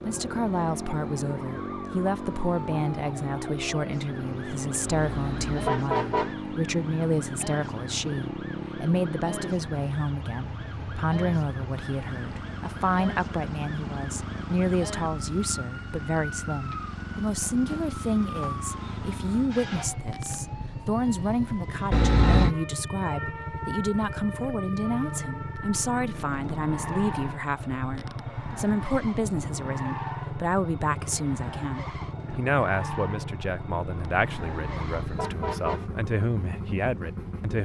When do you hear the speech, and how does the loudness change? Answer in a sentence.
The speech can be heard from 0.0 to 37.5 s, at a steady volume.